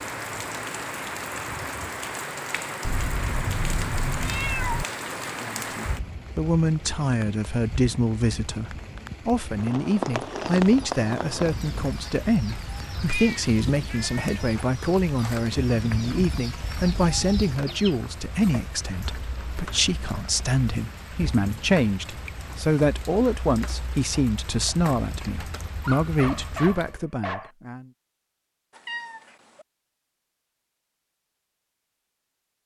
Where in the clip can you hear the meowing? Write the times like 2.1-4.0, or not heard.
2.9-4.8, 13.1-14.4, 28.7-29.6.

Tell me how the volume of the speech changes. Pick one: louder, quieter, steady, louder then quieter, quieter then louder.
steady.